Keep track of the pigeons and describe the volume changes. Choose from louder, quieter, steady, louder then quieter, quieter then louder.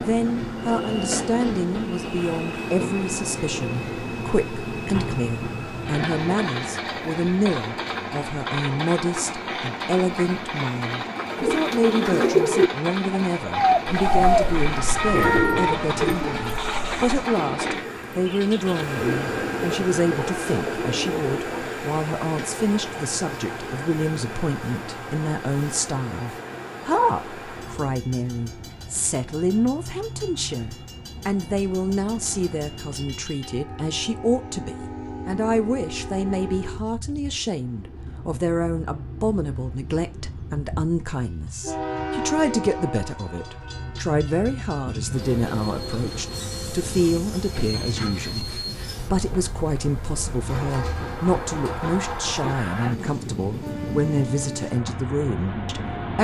quieter.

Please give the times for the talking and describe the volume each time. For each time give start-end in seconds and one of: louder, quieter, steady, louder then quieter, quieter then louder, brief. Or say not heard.
0.0-56.1 steady.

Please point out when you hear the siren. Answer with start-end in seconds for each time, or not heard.
13.9-17.2.